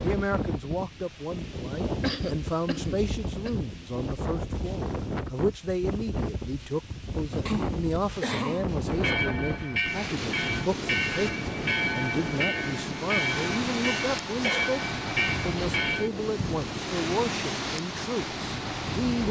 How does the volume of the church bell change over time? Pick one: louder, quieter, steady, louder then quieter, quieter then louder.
steady.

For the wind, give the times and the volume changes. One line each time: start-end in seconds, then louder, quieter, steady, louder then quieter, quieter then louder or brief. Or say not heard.
0.0-19.2 steady.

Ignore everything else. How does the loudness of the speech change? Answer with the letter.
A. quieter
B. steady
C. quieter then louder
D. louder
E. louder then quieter
B.